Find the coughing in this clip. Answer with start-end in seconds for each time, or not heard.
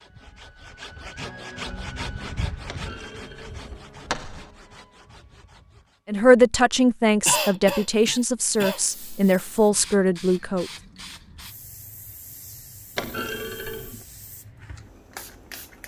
7.2-8.8.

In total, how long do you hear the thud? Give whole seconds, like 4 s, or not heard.
3 s.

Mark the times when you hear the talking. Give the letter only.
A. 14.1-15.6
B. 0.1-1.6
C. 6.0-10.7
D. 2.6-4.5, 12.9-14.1
C.